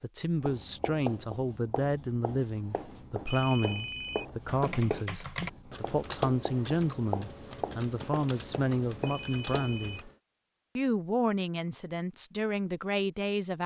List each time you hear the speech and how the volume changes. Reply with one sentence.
The speech can be heard from 0.0 to 10.1 s, at a steady volume; and briefly from 10.8 to 13.6 s.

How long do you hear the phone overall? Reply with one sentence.
You can hear the phone for 2 seconds altogether.